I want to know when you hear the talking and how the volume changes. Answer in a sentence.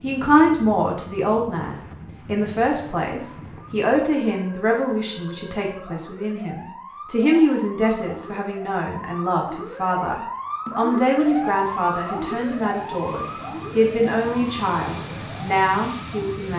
You can hear the talking from 0.0 to 16.5 s, at a steady volume.